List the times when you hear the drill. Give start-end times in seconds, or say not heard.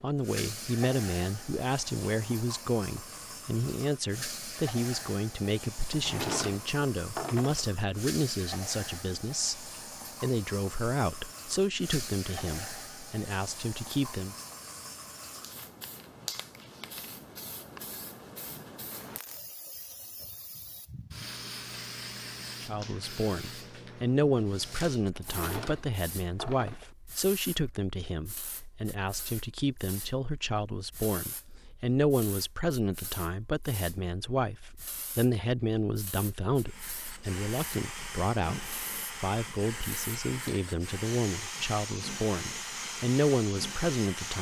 36.6-44.3.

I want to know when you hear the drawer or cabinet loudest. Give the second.
6 s.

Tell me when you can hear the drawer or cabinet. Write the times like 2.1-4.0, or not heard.
5.9-7.7, 25.1-26.9.